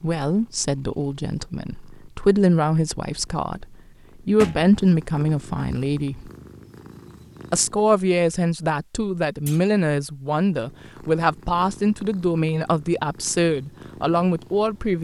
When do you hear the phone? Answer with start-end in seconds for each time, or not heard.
not heard.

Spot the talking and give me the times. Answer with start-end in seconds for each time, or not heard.
0.0-6.3, 7.5-14.9.